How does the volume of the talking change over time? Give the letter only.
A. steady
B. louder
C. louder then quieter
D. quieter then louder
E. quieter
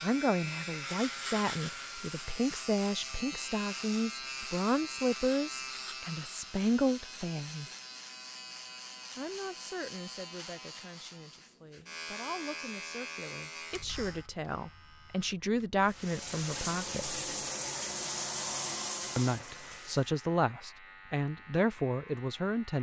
D.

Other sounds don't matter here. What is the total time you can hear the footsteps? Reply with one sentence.
You can't hear the footsteps here.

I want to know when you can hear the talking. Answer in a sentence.
You can hear the talking from 0.0 to 7.7 s, from 9.2 to 17.2 s and from 19.1 to 22.7 s.